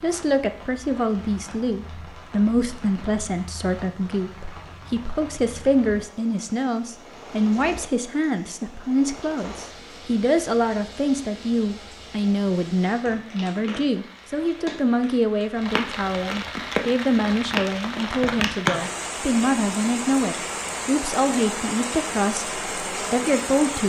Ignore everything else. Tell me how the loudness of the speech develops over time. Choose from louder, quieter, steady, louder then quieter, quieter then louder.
steady.